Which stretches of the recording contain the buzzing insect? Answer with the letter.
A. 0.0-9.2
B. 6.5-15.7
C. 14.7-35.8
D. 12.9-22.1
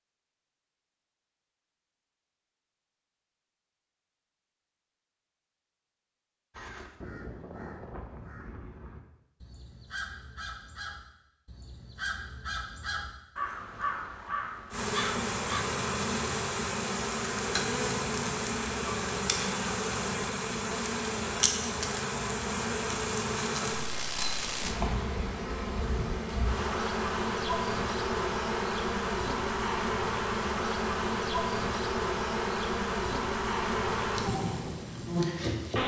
C.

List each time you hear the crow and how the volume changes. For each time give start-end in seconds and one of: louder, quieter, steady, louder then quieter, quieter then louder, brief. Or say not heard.
6.5-15.7 louder.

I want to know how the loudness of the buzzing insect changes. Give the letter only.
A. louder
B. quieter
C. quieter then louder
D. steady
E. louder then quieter
D.